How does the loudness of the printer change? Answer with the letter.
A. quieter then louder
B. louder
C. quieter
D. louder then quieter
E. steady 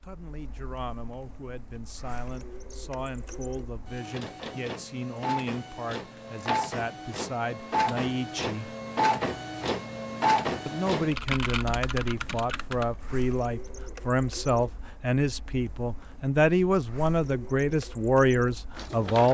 D.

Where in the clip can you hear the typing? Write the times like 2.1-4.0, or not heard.
11.1-12.9.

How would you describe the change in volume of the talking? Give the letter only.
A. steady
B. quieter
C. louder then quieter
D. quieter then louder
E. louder
E.